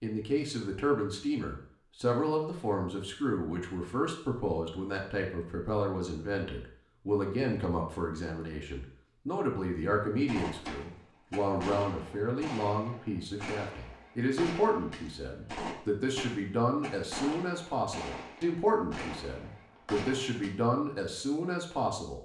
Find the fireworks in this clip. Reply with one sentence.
You can hear the fireworks from 10.2 to 20.6 s.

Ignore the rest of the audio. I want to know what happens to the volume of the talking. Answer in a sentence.
The volume of the talking stays about the same.